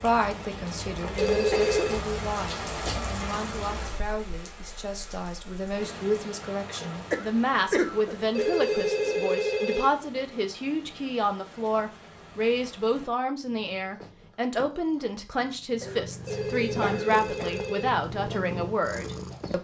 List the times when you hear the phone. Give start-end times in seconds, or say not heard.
1.1-2.0, 8.3-9.9, 16.2-17.9.